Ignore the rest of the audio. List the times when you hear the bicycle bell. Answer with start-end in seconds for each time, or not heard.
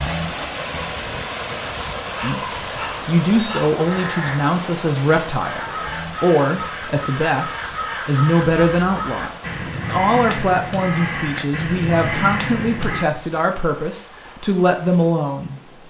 not heard.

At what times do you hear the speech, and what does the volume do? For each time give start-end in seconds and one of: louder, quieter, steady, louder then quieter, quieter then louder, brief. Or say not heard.
2.2-15.6 steady.